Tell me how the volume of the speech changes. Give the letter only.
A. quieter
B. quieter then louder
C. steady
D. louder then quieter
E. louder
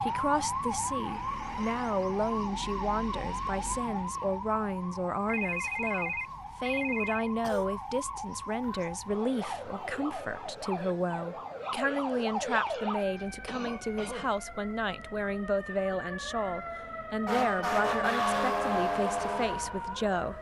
C.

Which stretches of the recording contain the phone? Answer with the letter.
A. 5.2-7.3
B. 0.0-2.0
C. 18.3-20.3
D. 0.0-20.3
A.